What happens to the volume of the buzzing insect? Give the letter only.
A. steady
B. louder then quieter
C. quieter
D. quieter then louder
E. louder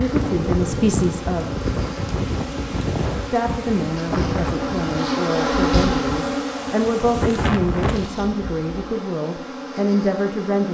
B.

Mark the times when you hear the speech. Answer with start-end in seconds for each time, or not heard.
0.0-1.5, 3.3-10.6.